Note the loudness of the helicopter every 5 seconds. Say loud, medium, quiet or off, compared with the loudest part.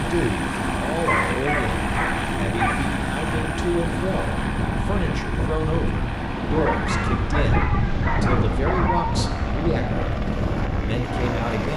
loud, medium, loud.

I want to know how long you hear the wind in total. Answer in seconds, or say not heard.
12 s.